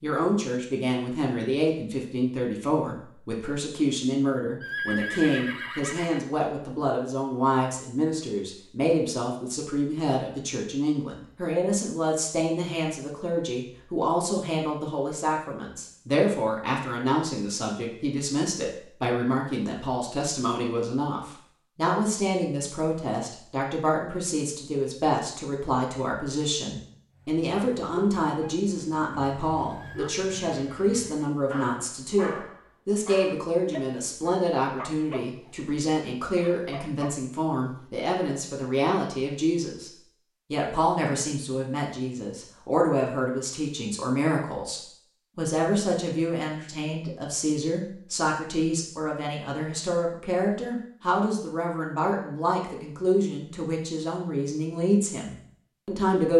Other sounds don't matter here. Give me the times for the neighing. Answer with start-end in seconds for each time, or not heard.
4.6-6.3, 29.6-31.3.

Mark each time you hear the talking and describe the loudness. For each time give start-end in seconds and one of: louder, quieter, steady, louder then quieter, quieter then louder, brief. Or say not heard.
0.0-39.9 steady
40.5-56.3 steady.